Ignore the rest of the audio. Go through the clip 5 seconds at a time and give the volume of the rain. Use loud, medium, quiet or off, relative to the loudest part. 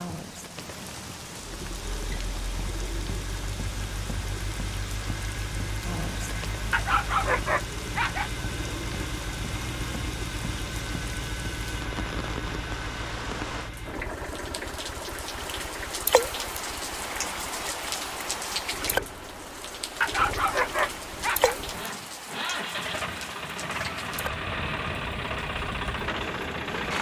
medium, medium, medium, loud, medium, medium.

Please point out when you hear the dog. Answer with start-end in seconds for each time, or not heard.
6.7-8.3, 20.0-21.6.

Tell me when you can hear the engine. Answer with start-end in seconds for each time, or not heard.
1.6-26.9.